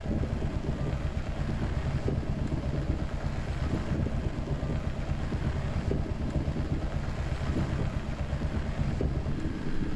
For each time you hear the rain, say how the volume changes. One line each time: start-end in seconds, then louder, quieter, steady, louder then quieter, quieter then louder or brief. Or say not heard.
0.0-9.9 steady.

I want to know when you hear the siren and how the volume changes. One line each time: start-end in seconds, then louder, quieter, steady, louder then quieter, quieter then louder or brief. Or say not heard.
not heard.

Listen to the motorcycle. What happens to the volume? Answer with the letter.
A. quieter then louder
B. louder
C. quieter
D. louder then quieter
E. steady
E.